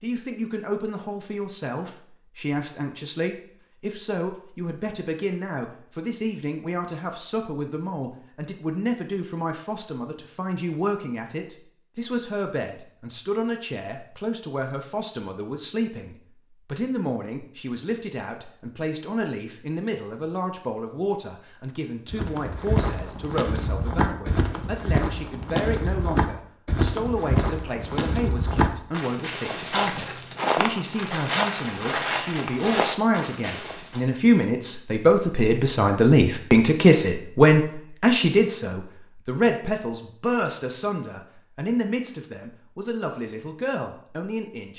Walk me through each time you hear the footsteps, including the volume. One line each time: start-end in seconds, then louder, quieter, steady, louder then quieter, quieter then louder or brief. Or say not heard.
22.1-34.0 steady.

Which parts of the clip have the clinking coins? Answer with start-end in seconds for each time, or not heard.
not heard.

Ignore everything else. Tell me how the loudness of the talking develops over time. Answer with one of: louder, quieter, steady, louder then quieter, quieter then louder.
louder.